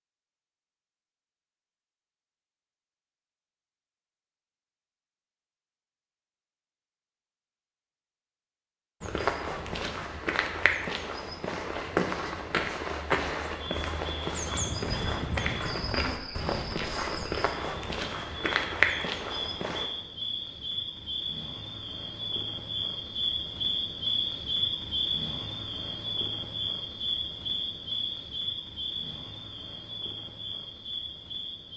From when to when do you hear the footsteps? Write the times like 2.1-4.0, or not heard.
9.0-19.9.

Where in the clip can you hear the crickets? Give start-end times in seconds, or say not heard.
13.6-31.7.